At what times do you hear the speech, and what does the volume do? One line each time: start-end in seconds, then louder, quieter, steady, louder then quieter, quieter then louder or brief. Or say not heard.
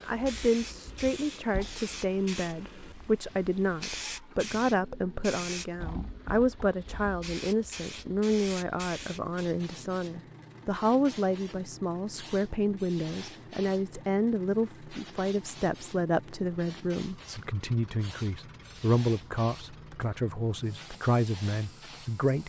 0.0-22.4 steady.